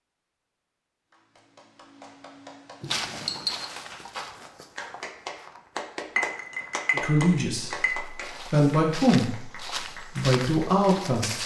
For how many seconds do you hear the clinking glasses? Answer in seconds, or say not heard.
3 s.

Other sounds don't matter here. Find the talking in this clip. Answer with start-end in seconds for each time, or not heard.
6.9-11.4.